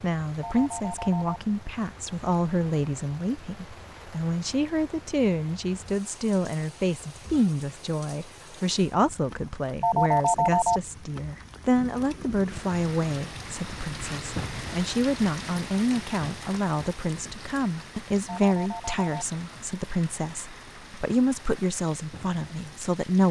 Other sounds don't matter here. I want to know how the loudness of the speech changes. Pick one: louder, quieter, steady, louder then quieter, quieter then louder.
steady.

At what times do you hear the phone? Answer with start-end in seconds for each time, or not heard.
0.4-1.4, 9.8-10.8, 18.2-19.2.